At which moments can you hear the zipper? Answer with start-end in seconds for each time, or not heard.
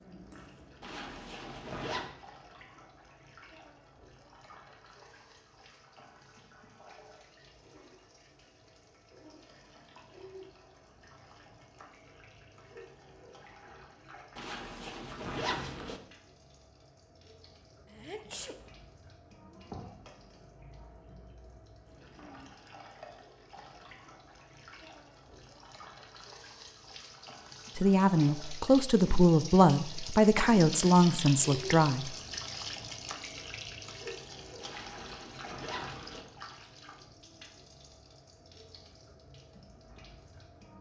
0.8-2.1, 14.3-16.0, 34.6-36.2.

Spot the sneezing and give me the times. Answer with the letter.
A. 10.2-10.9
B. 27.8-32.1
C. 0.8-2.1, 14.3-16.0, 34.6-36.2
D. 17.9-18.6
D.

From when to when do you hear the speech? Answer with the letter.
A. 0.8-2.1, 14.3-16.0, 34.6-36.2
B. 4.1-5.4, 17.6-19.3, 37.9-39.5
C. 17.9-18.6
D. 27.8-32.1
D.